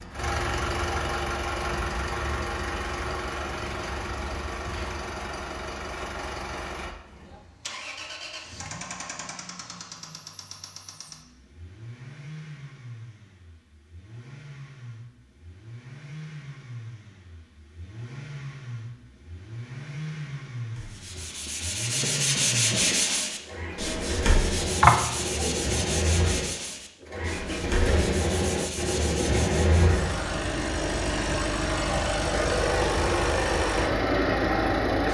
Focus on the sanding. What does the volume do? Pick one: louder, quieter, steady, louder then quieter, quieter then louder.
quieter.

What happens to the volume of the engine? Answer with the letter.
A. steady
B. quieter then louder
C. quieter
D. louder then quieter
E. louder
B.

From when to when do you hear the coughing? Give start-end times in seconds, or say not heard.
24.8-25.6.